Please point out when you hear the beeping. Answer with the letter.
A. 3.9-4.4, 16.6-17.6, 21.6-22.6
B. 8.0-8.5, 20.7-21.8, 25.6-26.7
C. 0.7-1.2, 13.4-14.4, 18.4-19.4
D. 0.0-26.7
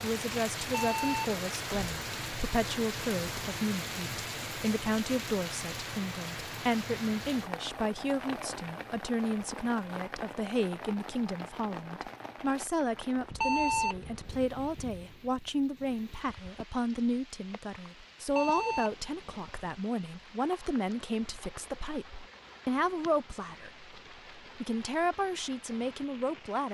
C.